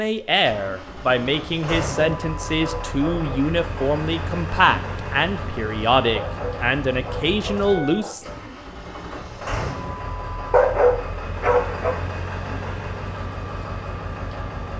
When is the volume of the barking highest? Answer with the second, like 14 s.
11 s.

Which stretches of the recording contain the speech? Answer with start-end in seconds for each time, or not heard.
0.0-8.2.